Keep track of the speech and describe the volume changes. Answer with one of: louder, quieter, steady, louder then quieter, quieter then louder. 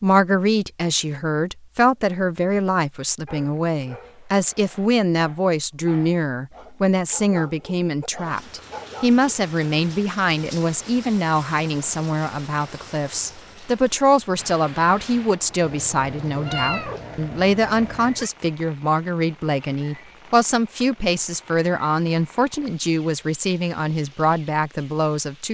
steady.